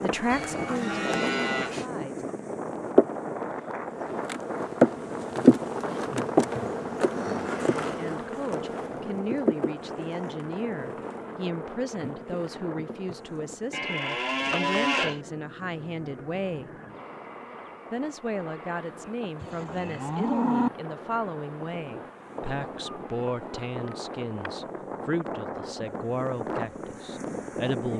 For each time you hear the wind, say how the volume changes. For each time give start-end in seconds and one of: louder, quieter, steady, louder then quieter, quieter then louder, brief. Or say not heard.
0.0-27.9 quieter then louder.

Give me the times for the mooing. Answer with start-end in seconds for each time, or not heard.
0.3-1.9, 13.7-15.2, 19.4-20.7.